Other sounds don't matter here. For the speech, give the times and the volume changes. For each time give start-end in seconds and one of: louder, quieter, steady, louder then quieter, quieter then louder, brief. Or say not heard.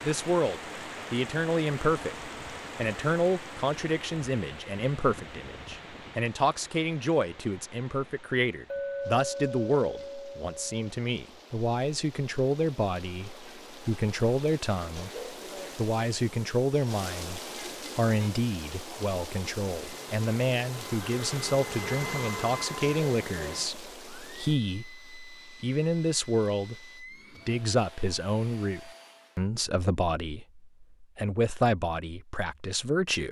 0.0-33.2 steady.